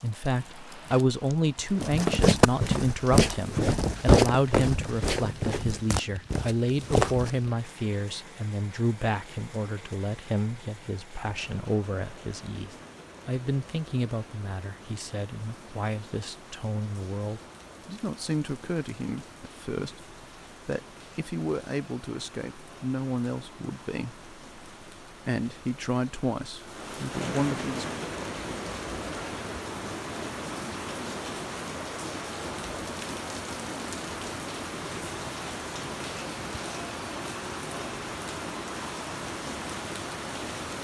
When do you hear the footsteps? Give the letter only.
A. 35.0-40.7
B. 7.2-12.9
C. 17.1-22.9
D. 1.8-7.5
D.